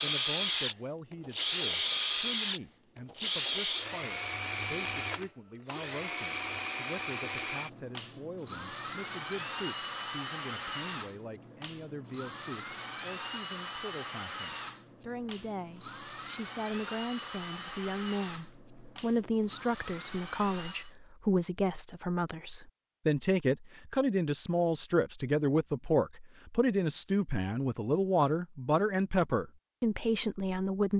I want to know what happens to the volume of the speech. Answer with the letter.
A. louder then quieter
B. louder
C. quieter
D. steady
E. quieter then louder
B.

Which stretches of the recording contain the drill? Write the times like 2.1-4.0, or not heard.
0.0-20.9.